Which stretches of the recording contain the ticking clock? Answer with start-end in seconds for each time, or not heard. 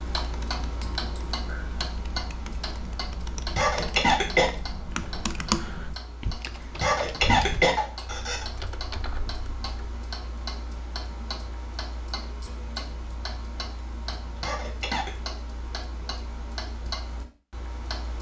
0.0-18.1.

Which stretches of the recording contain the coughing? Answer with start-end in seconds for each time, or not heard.
3.5-4.5, 6.8-8.4, 14.3-15.1.